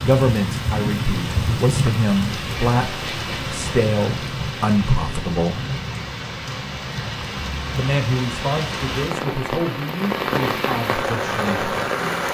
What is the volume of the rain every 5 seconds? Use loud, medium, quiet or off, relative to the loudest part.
loud, medium, loud.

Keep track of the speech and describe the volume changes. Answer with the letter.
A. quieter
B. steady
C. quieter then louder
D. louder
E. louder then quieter
A.